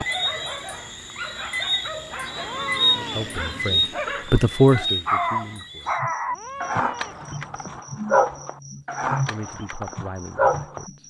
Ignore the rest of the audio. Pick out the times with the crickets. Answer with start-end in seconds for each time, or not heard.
0.0-11.0.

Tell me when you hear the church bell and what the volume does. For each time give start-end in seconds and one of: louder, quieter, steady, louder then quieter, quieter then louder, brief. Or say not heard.
not heard.